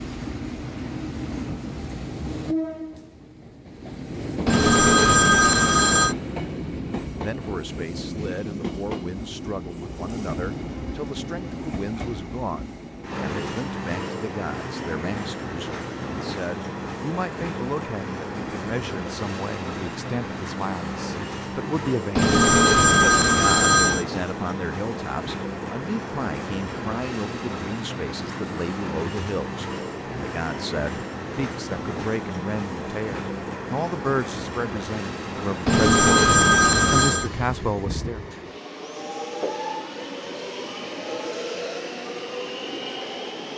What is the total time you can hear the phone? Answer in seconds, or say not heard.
5 s.